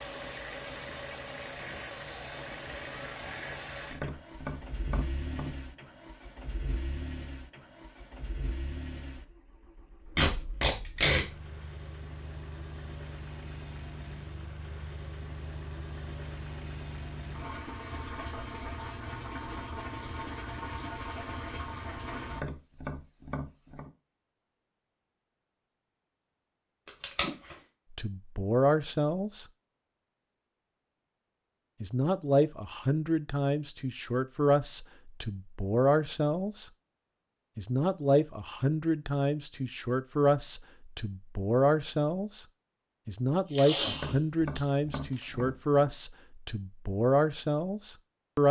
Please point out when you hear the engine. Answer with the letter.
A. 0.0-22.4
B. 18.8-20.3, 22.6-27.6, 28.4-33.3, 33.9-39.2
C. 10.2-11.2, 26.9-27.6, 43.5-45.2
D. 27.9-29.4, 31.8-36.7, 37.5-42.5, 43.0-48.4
A.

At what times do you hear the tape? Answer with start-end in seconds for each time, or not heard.
10.2-11.2, 26.9-27.6, 43.5-45.2.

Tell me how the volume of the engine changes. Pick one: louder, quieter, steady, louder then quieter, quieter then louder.
quieter then louder.